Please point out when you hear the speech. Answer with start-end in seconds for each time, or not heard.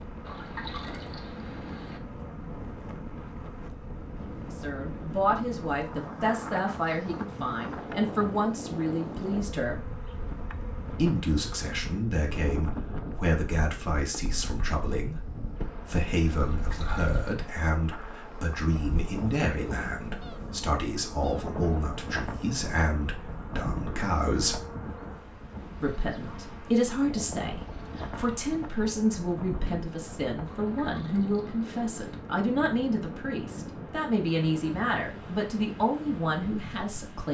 4.4-9.8, 10.9-24.6, 25.8-37.2.